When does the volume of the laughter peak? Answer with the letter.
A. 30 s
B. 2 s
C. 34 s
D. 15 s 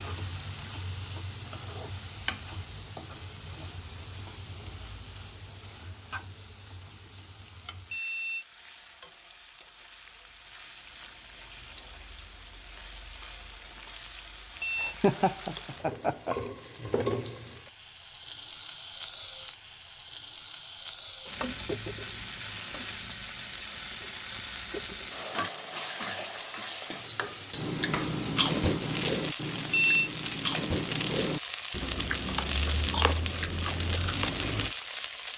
D.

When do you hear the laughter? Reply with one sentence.
The laughter can be heard from 14.8 to 16.4 s.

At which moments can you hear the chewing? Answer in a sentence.
The chewing can be heard from 27.6 to 34.8 s.